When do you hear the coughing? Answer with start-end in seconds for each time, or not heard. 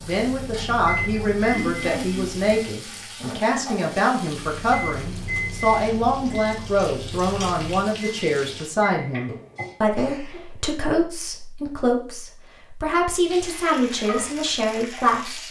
1.5-2.3, 8.8-10.4.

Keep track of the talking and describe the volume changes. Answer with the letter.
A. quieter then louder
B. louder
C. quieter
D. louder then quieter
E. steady
E.